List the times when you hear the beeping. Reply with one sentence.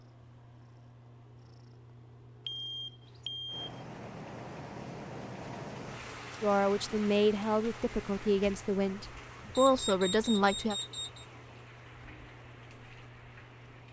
You can hear the beeping from 2.5 to 3.8 s and from 9.6 to 11.2 s.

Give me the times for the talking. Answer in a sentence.
You can hear the talking from 6.4 to 10.8 s.